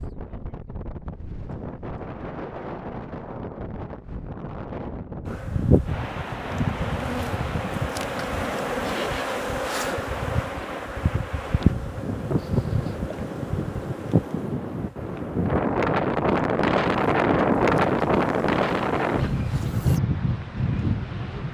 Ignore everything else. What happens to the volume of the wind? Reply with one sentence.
The volume of the wind goes up.